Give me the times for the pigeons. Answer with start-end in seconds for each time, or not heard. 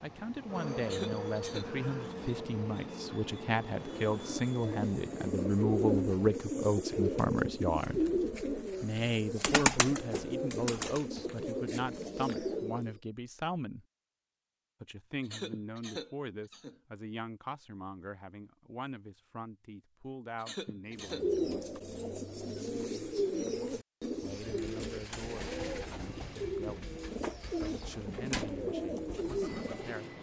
3.7-12.9, 20.9-30.1.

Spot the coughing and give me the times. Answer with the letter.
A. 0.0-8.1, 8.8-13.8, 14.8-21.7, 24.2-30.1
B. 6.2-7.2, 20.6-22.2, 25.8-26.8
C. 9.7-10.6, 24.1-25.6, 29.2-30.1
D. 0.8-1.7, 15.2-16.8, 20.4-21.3
D.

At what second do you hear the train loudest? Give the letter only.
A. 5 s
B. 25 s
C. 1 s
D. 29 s
C.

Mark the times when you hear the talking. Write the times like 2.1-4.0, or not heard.
0.0-8.1, 8.8-13.8, 14.8-21.7, 24.2-30.1.